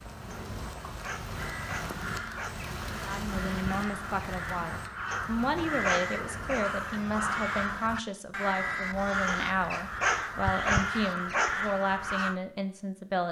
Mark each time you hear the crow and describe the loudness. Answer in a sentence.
The crow can be heard from 1.3 to 12.4 s, getting louder.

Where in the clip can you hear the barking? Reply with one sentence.
You can hear the barking from 0.3 to 2.7 s, from 5.1 to 6.7 s and from 9.2 to 11.6 s.